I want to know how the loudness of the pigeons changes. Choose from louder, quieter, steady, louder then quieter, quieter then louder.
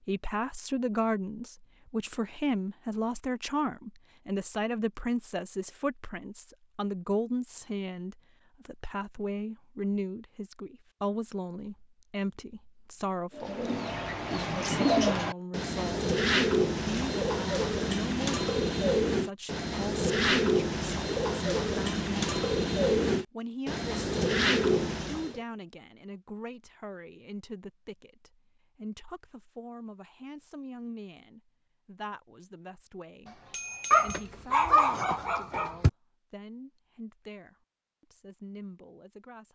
steady.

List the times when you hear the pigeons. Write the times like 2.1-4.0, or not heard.
13.3-25.4.